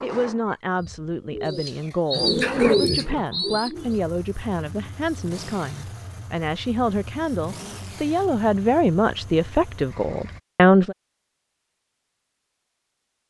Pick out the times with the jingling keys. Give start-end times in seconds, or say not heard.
not heard.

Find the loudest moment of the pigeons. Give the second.
3 s.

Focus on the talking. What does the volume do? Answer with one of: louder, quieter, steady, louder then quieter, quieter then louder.
louder.